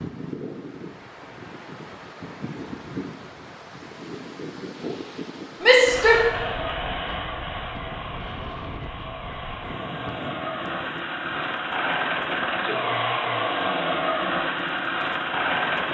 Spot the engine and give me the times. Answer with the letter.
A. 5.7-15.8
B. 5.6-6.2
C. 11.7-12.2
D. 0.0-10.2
A.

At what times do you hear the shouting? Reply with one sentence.
You can hear the shouting from 5.6 to 6.2 s.